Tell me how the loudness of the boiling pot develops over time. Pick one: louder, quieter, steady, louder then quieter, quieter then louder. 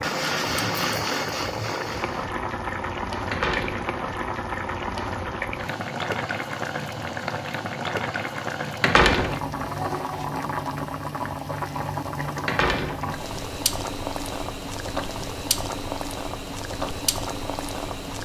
steady.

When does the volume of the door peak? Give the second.
9 s.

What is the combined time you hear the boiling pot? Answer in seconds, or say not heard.
18 s.